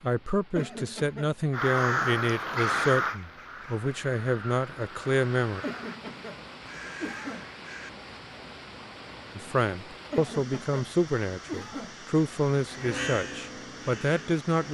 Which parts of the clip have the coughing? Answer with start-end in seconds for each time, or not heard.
0.6-1.4, 5.6-7.5, 10.1-11.9.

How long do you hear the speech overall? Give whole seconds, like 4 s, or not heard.
11 s.